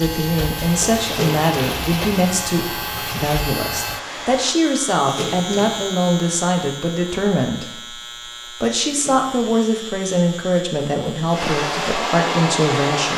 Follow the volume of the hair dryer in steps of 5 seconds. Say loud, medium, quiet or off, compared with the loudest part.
medium, off, loud.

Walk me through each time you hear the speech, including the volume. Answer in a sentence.
You can hear the speech from 0.0 to 13.1 s, at a steady volume.